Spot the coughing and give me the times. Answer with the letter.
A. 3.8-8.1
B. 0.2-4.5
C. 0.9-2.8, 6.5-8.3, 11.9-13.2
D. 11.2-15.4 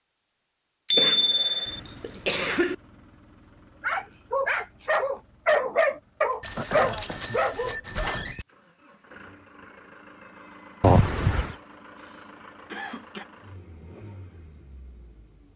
C.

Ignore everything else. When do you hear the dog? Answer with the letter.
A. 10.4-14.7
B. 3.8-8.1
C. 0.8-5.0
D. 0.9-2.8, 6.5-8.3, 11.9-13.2
B.